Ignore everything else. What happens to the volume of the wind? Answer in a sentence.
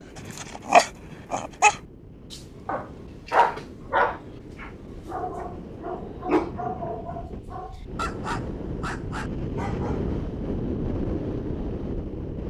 The loudness of the wind goes up.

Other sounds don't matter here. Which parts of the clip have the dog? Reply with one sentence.
The dog can be heard from 0.1 to 10.2 s.